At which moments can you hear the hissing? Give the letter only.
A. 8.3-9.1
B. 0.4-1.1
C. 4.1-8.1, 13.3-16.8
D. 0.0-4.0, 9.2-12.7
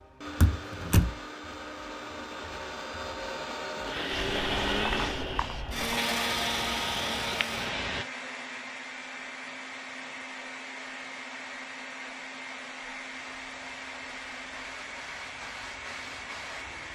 C.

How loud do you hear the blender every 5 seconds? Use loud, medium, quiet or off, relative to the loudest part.
loud, loud, medium, medium.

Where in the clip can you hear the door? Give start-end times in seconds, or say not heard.
0.4-1.1.